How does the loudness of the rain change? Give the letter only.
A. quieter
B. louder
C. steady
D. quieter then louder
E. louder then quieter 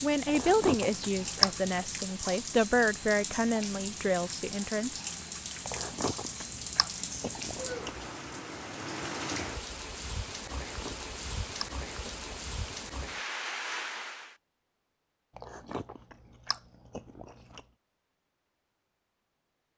C.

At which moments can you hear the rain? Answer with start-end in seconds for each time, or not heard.
0.0-14.3.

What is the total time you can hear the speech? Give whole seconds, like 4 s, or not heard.
5 s.